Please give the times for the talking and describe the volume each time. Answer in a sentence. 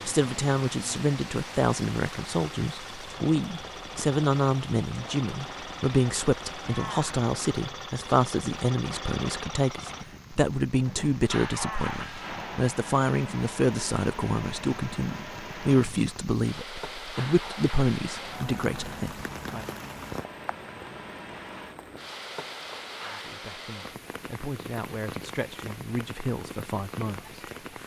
You can hear the talking from 0.1 to 19.6 s, at a steady volume; and from 23.1 to 27.8 s, getting louder.